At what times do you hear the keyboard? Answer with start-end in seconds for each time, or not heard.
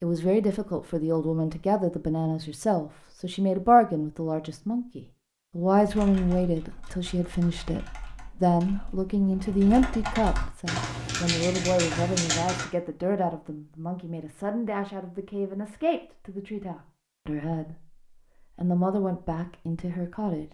5.8-12.7.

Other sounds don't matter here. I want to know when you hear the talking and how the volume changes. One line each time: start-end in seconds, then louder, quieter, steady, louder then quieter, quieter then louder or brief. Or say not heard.
0.0-17.9 quieter
18.6-20.4 brief.